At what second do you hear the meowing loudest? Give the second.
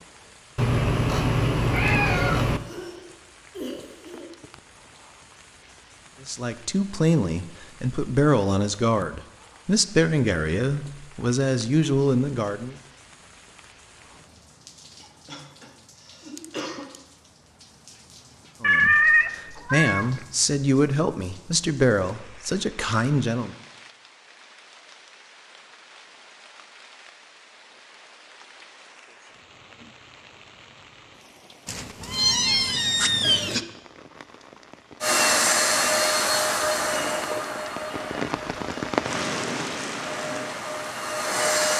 19 s.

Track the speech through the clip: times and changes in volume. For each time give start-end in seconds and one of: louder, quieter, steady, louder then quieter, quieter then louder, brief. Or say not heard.
6.2-12.8 steady
18.6-23.6 steady.